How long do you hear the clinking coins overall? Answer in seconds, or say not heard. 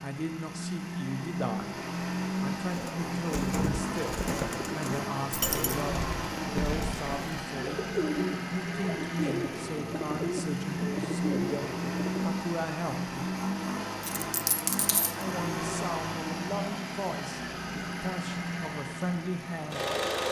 2 s.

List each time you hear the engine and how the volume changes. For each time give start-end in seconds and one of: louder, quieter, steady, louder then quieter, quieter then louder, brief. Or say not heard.
0.0-20.2 steady.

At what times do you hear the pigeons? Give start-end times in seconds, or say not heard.
2.7-12.3.